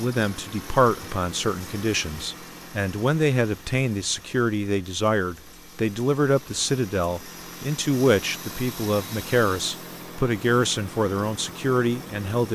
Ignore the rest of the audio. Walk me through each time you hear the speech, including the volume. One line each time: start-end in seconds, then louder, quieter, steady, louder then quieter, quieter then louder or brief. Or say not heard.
0.0-12.5 steady.